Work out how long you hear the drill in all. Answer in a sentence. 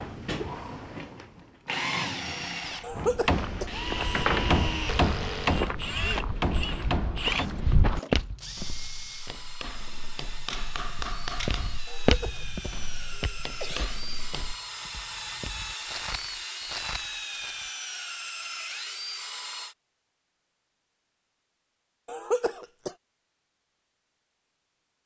You can hear the drill for 20 seconds altogether.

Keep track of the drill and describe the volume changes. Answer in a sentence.
The volume of the drill goes down, then up.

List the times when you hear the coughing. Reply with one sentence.
The coughing can be heard from 2.8 to 4.2 s, from 11.8 to 13.9 s and from 22.1 to 22.9 s.